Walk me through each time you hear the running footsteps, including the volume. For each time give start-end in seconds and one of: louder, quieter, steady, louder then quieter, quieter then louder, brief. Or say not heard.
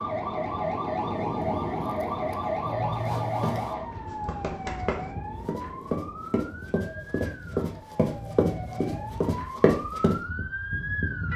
2.9-10.2 louder.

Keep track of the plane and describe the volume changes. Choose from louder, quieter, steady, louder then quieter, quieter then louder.
quieter.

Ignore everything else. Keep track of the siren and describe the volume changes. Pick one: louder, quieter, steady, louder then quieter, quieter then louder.
quieter then louder.